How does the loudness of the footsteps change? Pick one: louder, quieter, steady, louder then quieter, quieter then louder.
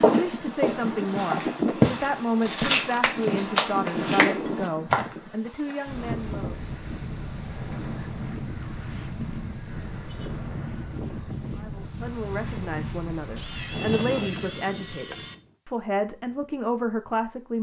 louder then quieter.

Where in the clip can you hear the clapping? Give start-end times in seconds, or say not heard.
2.5-4.3.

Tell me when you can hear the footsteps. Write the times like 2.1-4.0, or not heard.
0.0-5.2.